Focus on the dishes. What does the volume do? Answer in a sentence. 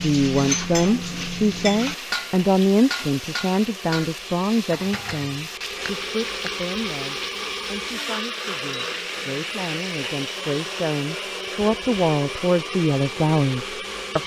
The volume of the dishes goes down.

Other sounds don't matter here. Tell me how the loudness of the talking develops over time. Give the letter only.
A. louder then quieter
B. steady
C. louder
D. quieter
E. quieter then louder
E.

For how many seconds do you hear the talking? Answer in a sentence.
You can hear the talking for 14 seconds altogether.